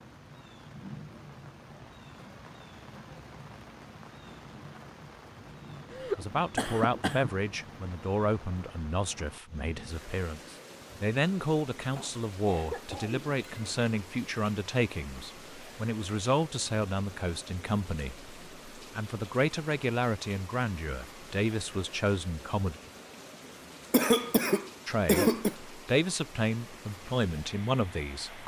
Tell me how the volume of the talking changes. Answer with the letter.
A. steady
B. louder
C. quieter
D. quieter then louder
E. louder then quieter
A.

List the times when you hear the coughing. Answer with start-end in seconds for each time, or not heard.
5.9-7.3, 11.9-13.9, 23.9-25.6.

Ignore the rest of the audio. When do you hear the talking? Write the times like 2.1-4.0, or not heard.
6.2-22.8, 24.9-28.4.